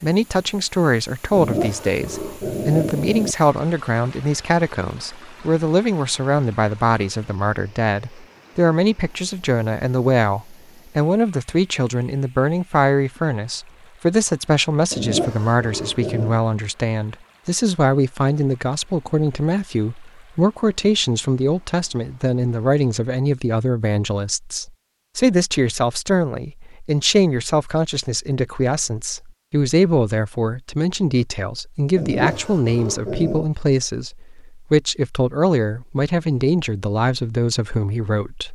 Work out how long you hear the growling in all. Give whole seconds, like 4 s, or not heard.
5 s.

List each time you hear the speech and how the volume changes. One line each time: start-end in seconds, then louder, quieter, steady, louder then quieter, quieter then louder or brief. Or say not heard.
0.0-38.4 steady.